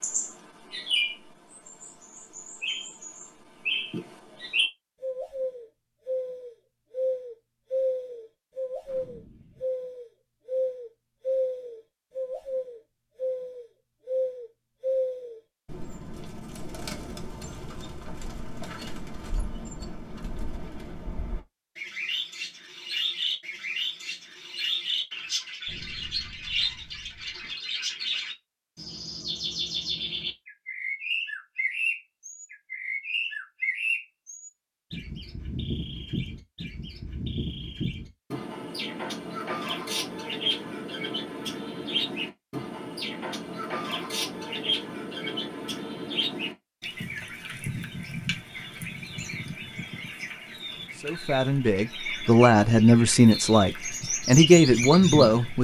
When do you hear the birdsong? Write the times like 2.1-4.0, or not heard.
0.0-55.5.